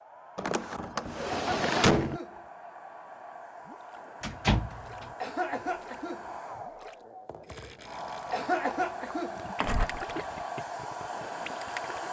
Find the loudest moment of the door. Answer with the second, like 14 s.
2 s.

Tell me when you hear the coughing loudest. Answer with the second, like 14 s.
9 s.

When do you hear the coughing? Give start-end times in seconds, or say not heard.
1.3-2.5, 5.2-6.3, 8.3-9.5.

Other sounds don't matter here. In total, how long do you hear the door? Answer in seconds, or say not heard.
3 s.